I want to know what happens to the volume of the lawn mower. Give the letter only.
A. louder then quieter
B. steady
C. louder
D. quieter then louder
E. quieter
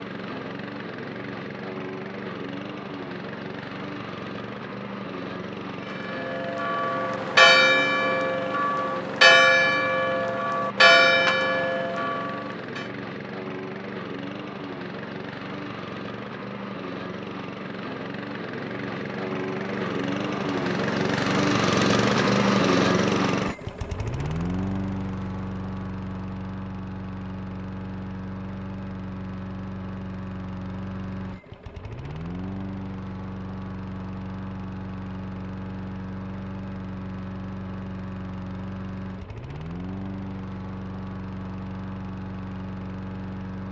A.